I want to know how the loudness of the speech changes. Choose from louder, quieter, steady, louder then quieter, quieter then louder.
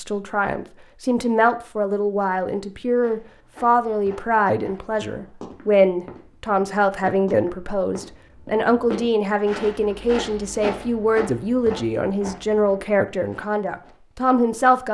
steady.